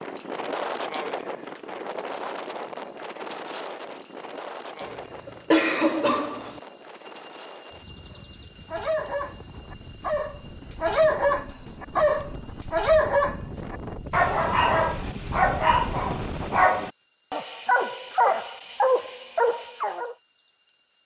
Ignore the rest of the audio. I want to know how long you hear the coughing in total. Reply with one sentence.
The coughing can be heard for 2 seconds in total.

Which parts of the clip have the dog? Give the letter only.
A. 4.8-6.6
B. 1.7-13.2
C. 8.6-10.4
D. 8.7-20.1
D.